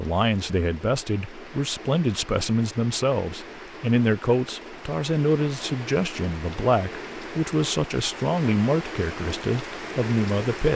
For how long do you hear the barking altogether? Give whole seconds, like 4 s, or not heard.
not heard.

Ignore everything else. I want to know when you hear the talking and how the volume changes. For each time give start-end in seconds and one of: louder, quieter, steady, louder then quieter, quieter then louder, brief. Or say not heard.
0.0-10.7 steady.